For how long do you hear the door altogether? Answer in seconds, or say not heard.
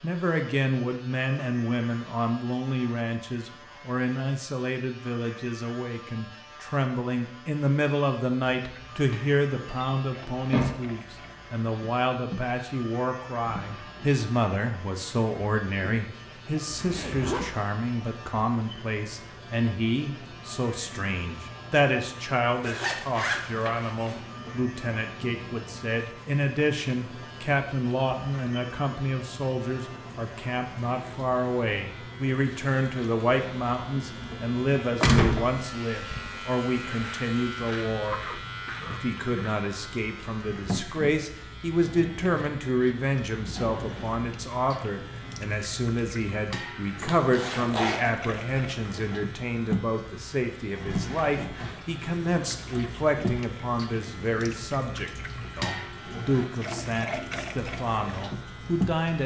2 s.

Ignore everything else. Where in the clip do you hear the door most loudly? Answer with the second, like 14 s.
35 s.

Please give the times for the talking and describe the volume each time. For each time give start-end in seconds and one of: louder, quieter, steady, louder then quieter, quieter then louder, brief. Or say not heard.
0.0-59.2 steady.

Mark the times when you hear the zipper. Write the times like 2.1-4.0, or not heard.
16.7-17.6, 22.6-24.2, 47.0-48.0.